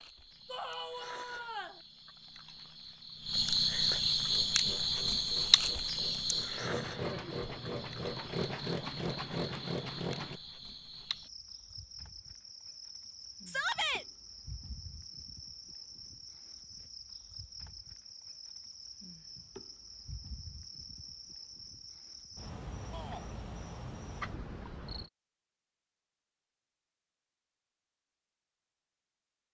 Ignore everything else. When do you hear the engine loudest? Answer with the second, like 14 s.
9 s.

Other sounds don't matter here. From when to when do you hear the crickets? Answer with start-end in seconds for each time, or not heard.
0.0-25.1.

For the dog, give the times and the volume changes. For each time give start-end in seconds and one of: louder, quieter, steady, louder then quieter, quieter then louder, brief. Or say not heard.
not heard.